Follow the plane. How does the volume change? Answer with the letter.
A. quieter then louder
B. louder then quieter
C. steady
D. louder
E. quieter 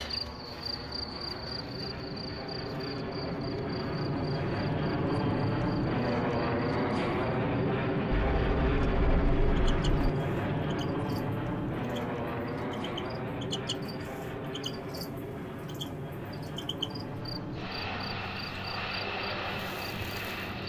B.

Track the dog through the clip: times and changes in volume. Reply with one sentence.
The dog can't be heard in this clip.